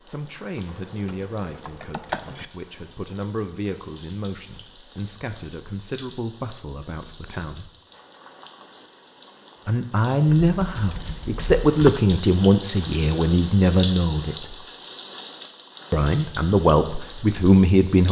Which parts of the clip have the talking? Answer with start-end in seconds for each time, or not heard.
0.0-7.7, 9.7-14.6, 15.9-18.0.